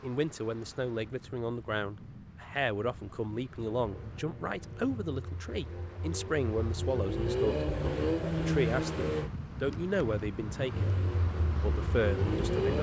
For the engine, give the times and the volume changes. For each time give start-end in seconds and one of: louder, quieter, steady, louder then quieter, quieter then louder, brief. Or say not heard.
3.8-9.3 louder
10.7-12.7 brief.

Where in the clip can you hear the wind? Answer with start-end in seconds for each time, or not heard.
0.0-12.7.